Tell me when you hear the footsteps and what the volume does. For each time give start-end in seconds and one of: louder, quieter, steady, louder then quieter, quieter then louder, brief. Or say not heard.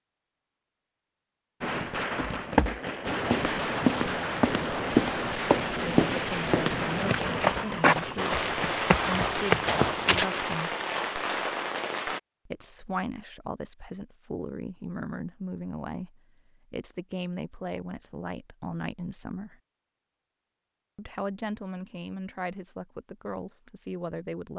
2.1-10.2 steady.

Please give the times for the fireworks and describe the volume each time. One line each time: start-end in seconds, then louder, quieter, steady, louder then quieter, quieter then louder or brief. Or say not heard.
1.6-12.2 steady.